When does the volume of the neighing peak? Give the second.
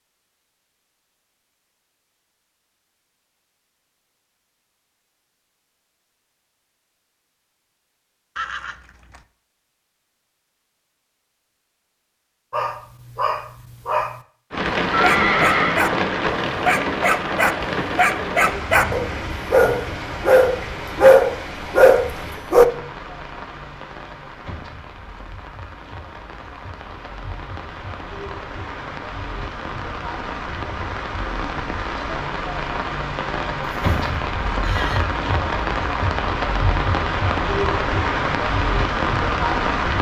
15 s.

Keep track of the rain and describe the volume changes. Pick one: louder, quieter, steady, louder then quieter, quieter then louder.
quieter then louder.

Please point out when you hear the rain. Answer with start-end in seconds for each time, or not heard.
14.5-39.9.